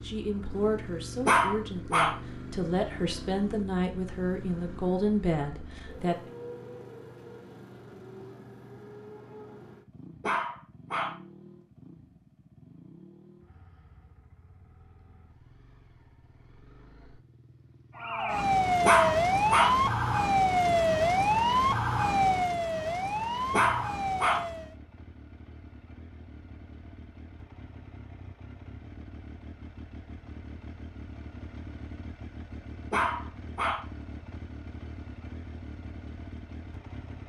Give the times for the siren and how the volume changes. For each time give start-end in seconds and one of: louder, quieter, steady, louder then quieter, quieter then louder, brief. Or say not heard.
17.9-24.8 quieter.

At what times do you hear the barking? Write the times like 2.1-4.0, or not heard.
1.2-2.1, 10.2-11.2, 18.9-19.8, 23.5-24.4, 32.9-33.8.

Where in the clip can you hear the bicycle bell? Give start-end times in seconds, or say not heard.
not heard.